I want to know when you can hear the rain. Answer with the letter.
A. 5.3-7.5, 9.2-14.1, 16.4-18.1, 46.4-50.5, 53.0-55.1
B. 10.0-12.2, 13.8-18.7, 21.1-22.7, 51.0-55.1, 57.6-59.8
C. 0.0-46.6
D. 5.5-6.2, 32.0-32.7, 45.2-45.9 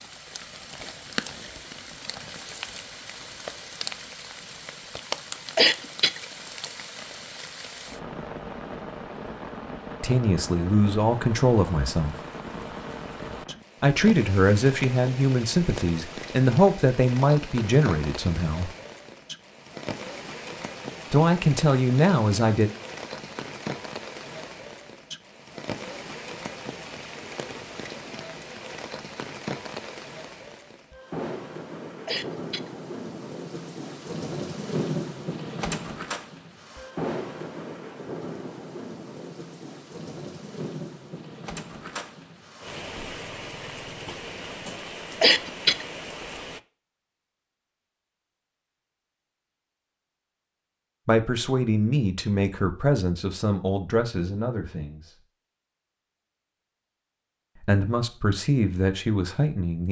C.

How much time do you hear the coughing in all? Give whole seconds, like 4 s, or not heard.
2 s.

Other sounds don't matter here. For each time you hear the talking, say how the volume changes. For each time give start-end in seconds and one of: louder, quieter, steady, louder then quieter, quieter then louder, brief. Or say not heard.
10.0-12.2 brief
13.8-18.7 steady
21.1-22.7 brief
51.0-55.1 quieter
57.6-59.8 brief.